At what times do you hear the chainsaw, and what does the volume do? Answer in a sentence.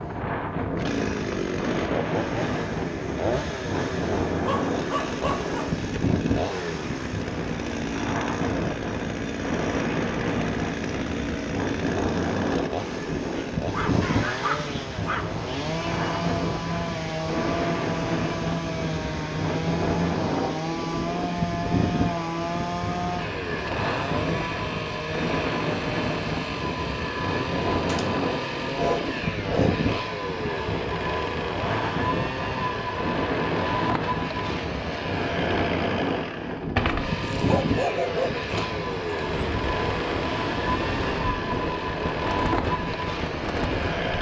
The chainsaw can be heard from 0.0 to 44.1 s, at a steady volume.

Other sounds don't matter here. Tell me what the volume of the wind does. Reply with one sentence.
The volume of the wind stays about the same.